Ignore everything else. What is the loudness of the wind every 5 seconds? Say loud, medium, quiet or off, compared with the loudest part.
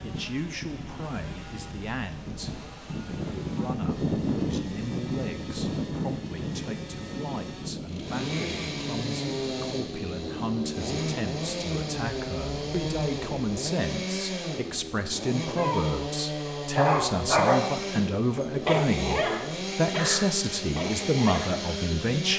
loud, loud, medium, off, off.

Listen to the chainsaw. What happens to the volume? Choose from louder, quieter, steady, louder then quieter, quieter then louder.
louder.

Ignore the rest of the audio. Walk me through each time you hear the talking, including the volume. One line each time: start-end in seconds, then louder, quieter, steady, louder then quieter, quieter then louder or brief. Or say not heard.
0.0-22.3 louder.